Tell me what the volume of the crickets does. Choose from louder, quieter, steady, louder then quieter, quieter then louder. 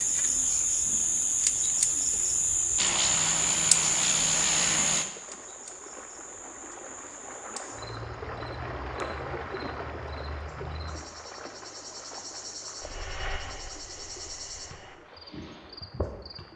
quieter.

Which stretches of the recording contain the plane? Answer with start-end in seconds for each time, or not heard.
2.8-5.0, 12.8-15.0.